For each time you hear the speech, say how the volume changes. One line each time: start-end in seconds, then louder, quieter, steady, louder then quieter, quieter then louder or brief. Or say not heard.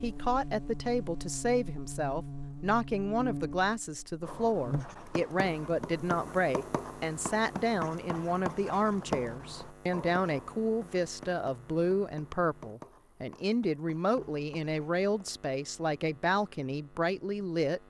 0.0-17.8 steady.